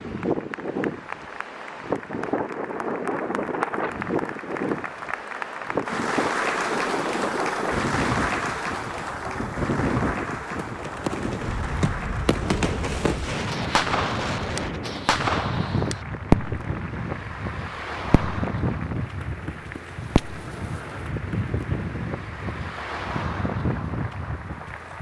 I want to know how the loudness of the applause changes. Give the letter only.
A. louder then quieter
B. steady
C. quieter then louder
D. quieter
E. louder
A.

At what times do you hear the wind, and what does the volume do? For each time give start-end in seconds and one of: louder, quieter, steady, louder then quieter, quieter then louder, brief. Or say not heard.
0.0-24.9 steady.